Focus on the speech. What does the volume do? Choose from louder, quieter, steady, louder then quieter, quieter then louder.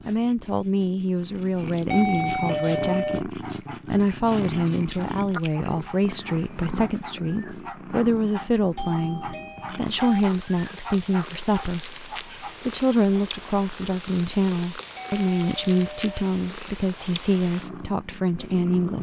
steady.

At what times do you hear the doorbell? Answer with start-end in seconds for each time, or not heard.
1.9-3.2, 8.8-10.2, 14.9-16.2.